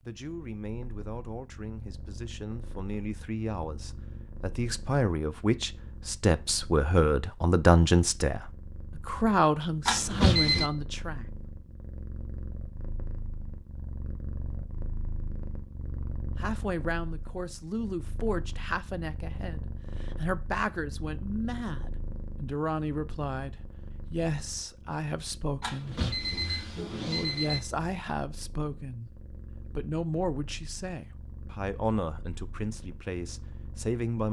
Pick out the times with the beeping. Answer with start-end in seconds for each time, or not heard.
9.8-10.7, 25.6-27.6.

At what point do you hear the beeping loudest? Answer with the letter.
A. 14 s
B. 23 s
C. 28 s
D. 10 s
D.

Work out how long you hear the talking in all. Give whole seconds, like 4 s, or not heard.
29 s.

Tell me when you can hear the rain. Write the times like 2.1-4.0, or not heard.
not heard.